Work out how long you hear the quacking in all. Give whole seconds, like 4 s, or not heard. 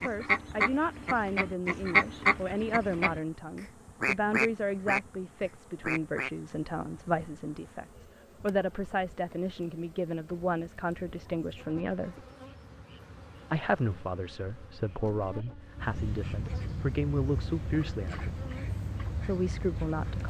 16 s.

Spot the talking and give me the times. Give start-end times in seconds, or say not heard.
0.0-12.2, 13.5-18.4, 19.2-20.2.